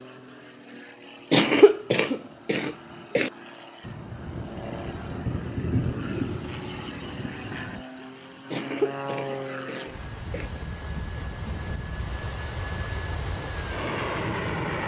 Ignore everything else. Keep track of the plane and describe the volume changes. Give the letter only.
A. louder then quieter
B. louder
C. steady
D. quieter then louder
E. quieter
B.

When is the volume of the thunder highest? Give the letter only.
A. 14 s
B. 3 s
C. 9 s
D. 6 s
D.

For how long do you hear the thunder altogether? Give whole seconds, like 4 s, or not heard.
4 s.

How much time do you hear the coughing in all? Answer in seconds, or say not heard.
4 s.